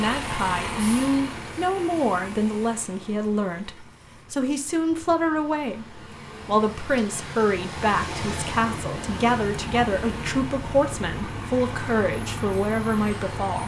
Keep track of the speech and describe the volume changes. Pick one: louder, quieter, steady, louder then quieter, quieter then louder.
steady.